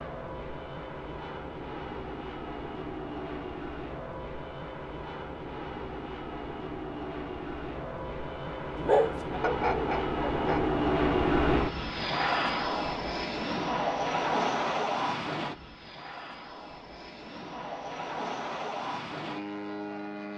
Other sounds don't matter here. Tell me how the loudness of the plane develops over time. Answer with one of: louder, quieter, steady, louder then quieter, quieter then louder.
louder then quieter.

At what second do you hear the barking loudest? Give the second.
9 s.